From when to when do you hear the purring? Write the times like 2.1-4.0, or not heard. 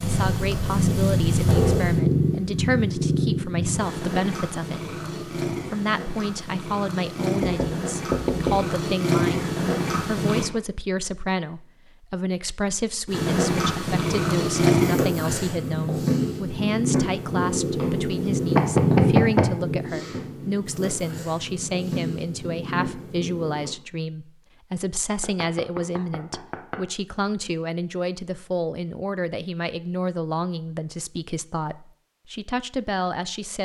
0.0-10.4, 13.1-23.8.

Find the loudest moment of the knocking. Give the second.
19 s.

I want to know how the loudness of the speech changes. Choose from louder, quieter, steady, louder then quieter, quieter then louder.
steady.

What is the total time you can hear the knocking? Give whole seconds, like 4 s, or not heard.
4 s.